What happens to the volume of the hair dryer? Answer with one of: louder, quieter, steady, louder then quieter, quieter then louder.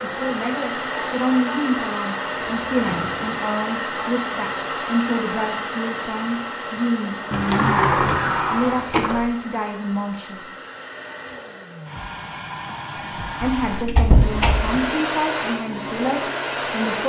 quieter then louder.